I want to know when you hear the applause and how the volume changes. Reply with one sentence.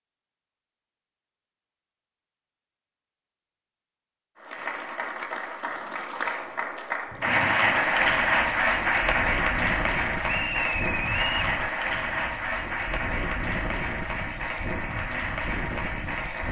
The applause can be heard from 4.3 to 16.4 s, getting louder then quieter.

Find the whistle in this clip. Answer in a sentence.
The whistle can be heard from 10.2 to 11.4 s.